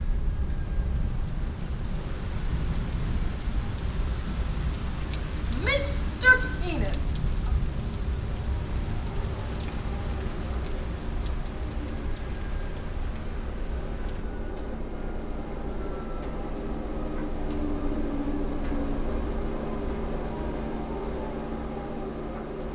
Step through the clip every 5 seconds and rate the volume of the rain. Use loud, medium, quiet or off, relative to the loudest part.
loud, loud, medium, off, off.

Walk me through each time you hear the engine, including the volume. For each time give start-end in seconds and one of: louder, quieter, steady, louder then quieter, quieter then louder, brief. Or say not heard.
0.0-22.6 louder.